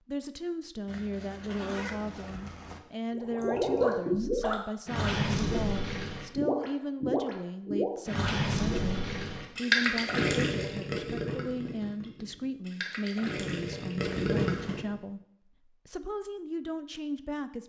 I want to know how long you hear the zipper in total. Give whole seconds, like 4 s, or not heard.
3 s.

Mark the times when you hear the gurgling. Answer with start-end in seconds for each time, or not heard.
3.1-14.9.